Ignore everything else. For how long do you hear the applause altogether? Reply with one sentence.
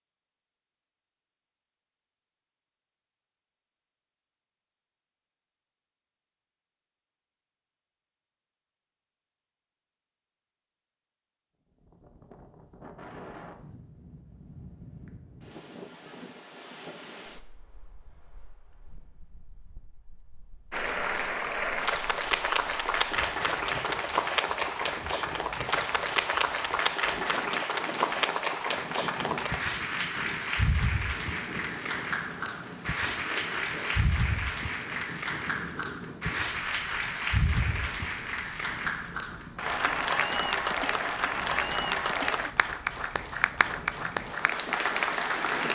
You can hear the applause for 25 seconds altogether.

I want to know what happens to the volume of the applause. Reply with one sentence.
The volume of the applause stays about the same.